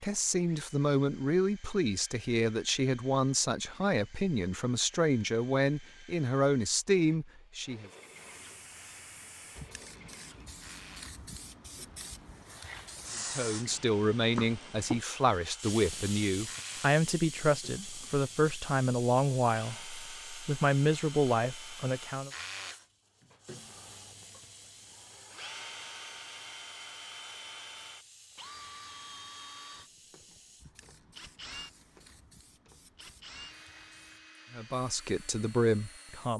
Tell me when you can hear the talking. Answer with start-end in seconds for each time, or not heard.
0.0-7.9, 13.3-22.3, 34.5-36.3.